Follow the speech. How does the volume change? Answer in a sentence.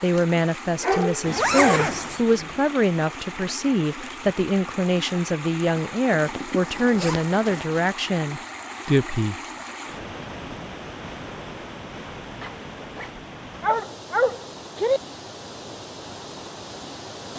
The volume of the speech stays about the same.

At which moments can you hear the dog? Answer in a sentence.
You can hear the dog from 0.8 to 2.5 s and from 13.6 to 15.0 s.